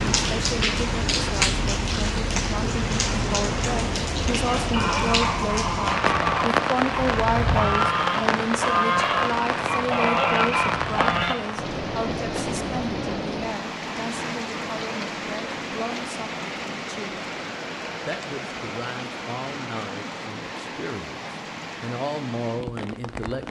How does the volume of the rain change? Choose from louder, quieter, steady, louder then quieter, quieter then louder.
quieter.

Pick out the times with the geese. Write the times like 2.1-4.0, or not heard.
4.5-11.3.